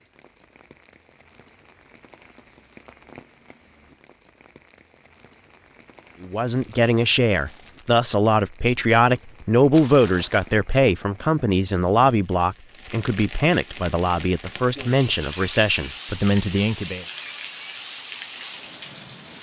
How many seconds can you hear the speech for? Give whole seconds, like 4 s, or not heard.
11 s.